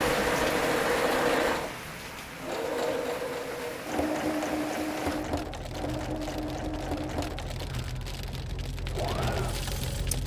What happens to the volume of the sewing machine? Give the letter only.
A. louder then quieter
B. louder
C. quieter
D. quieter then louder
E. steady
C.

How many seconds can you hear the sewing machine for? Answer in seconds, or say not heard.
10 s.